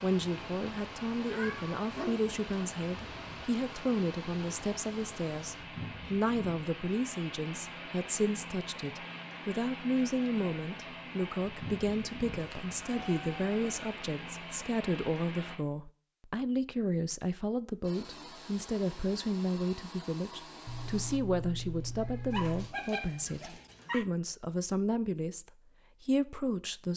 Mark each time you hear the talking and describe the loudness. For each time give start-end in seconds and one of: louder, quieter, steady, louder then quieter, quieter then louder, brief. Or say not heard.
0.0-26.9 steady.